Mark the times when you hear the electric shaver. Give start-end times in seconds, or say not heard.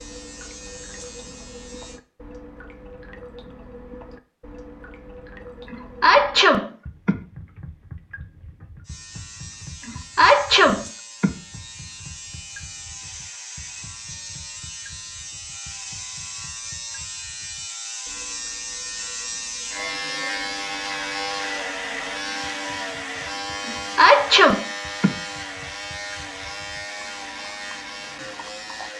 0.0-2.0, 8.8-28.9.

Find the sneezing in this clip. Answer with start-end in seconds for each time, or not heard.
5.7-7.2, 9.8-11.3, 23.6-25.1.